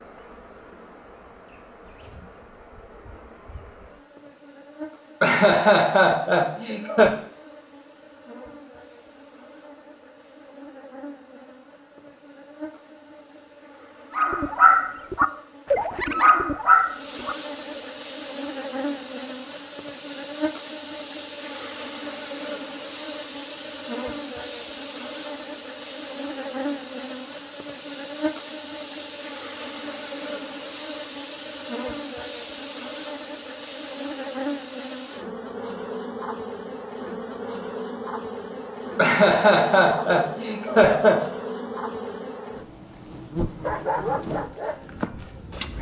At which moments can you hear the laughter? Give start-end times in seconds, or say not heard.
5.2-7.1, 39.0-41.3.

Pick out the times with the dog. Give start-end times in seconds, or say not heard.
14.1-17.9, 43.6-45.7.